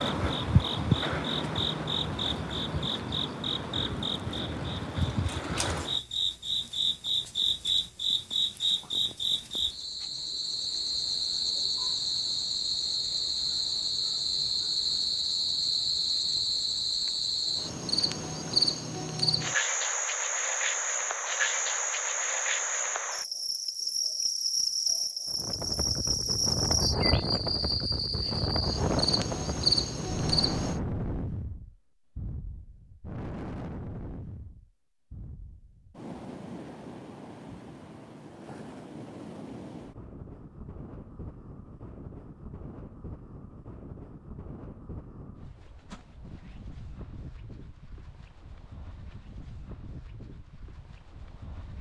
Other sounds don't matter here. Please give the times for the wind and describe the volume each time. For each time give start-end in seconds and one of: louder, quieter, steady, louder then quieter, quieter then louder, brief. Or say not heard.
25.2-51.7 quieter.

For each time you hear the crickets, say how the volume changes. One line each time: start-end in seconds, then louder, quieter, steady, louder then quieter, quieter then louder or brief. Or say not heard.
0.0-30.8 steady.